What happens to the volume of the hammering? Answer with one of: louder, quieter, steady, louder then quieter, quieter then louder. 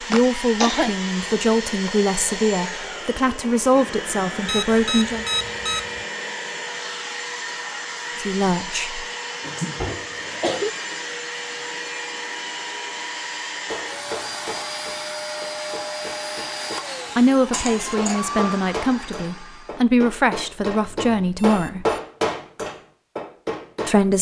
louder.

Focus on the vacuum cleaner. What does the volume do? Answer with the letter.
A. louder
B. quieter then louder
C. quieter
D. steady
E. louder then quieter
D.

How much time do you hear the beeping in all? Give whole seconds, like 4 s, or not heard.
3 s.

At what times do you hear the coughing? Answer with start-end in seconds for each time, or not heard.
0.1-0.9, 9.4-10.7, 17.5-18.2.